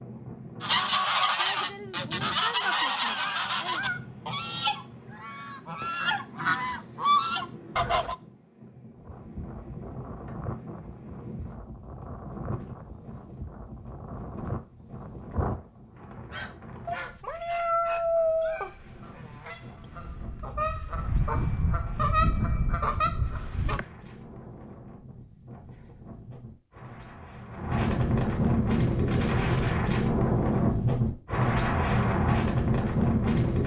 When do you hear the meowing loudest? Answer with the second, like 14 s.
18 s.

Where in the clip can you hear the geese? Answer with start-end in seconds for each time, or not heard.
0.6-8.2, 16.3-23.9.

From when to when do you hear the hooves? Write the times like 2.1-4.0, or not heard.
8.9-15.6.